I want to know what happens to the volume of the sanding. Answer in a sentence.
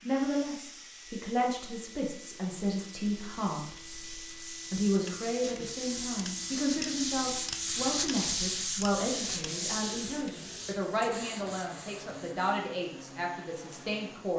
The volume of the sanding goes up, then down.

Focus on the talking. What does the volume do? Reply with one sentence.
The volume of the talking stays about the same.